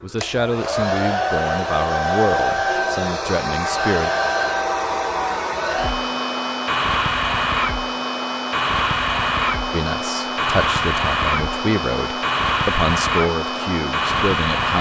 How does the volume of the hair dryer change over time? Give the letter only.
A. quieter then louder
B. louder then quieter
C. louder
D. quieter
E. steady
E.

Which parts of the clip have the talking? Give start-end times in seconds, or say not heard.
0.0-4.1, 9.7-14.7.